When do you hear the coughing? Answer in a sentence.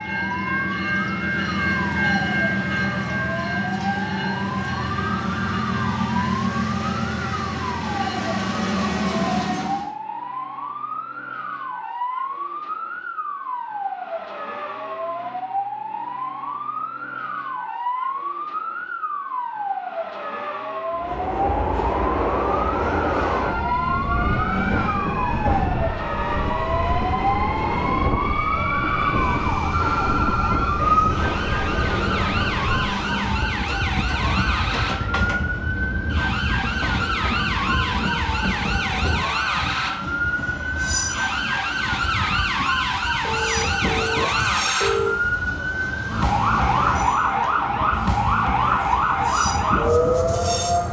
The coughing can't be heard in this clip.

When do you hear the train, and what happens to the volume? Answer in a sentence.
You can hear the train from 0.0 to 9.9 s, at a steady volume; and from 20.9 to 50.8 s, getting quieter.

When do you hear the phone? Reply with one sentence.
The phone can be heard from 4.9 to 6.0 s, from 29.7 to 30.9 s and from 43.2 to 45.1 s.